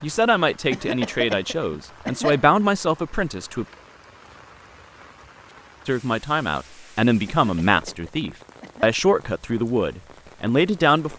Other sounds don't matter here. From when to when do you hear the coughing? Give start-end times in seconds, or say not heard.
0.7-2.4, 7.2-8.9.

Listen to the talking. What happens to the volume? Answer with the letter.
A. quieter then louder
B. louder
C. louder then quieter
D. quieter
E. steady
E.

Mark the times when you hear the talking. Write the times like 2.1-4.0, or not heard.
0.0-3.6, 5.8-11.1.